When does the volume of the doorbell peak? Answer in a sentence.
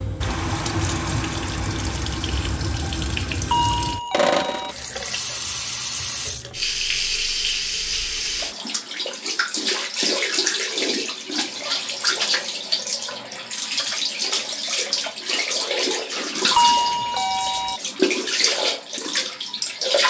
The volume of the doorbell peaks at 17 seconds.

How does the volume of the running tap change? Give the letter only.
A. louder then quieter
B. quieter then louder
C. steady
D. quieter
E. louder
C.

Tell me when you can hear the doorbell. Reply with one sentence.
You can hear the doorbell from 3.5 to 4.8 s and from 16.6 to 17.8 s.